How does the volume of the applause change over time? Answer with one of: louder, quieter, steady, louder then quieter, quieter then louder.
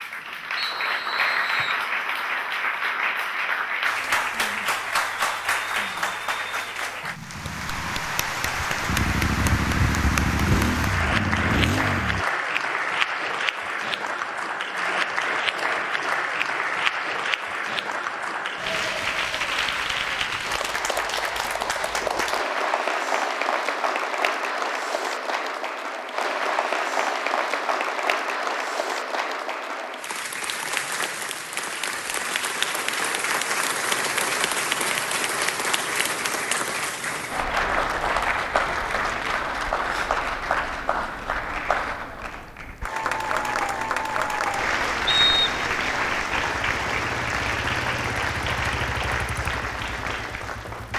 steady.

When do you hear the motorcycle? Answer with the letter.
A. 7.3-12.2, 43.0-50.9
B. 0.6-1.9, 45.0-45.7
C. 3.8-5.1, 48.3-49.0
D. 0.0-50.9
A.